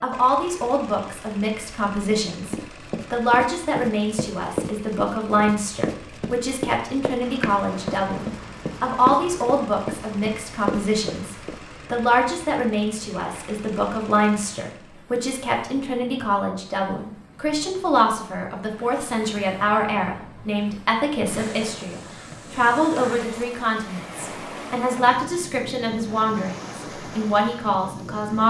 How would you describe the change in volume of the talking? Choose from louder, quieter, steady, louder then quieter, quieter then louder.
steady.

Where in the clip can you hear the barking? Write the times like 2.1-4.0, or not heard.
not heard.